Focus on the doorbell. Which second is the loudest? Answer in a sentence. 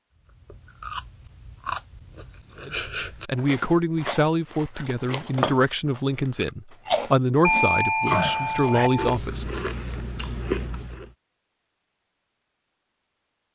The loudest moment of the doorbell is at 8 seconds.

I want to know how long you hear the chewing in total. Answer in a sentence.
The chewing can be heard for 11 seconds in total.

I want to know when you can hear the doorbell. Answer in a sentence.
The doorbell can be heard from 7.4 to 9.2 s.